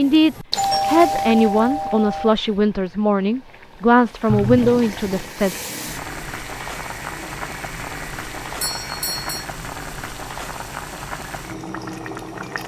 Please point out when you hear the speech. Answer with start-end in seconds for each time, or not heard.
0.0-5.5.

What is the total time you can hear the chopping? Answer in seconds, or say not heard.
not heard.